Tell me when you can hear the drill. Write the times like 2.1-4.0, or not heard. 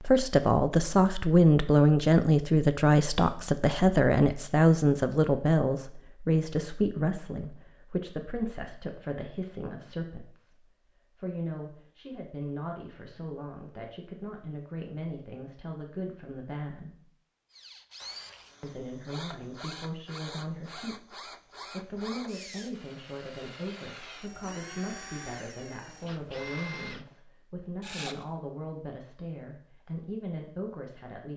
17.5-28.4.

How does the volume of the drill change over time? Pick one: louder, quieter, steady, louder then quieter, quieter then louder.
steady.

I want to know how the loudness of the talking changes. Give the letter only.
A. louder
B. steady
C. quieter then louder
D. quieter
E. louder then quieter
D.